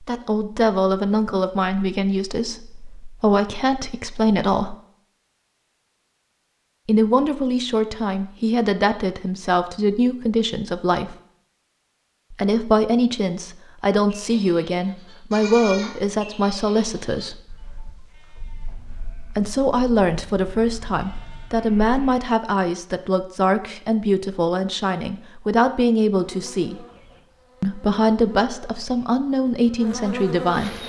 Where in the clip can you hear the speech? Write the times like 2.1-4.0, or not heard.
0.0-4.8, 6.8-11.2, 12.3-17.4, 19.4-26.9, 27.6-30.8.